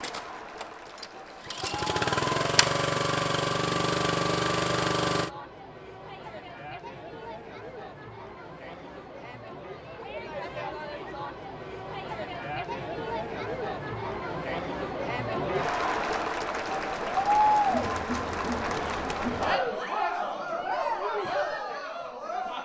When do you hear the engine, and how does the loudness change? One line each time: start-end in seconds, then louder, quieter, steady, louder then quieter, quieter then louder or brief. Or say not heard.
0.0-5.3 louder.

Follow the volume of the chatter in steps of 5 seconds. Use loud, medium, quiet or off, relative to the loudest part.
quiet, quiet, medium, loud, loud.